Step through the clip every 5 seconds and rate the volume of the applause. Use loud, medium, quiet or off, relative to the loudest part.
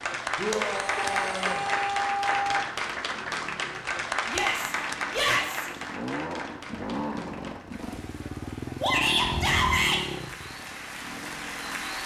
loud, medium, medium.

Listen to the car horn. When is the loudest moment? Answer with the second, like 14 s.
2 s.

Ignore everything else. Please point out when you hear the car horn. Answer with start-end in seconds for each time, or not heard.
0.9-2.6, 9.2-9.8.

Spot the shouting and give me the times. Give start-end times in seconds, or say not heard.
0.3-1.6, 4.2-5.7, 8.8-10.0.